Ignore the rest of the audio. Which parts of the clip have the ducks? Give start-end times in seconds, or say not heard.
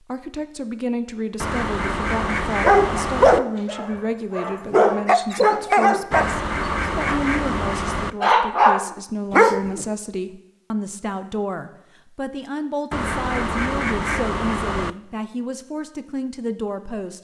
1.4-3.4, 6.1-8.2, 12.9-14.9.